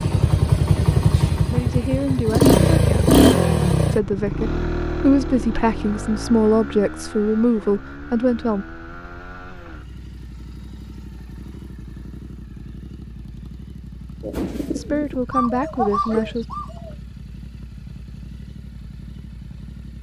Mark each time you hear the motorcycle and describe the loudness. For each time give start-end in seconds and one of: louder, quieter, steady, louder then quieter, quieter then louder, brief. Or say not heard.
0.0-19.9 quieter.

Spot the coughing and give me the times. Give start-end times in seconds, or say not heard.
not heard.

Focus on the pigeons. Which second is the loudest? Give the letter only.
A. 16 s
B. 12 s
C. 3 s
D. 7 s
A.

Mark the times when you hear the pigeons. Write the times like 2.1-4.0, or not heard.
14.2-16.9.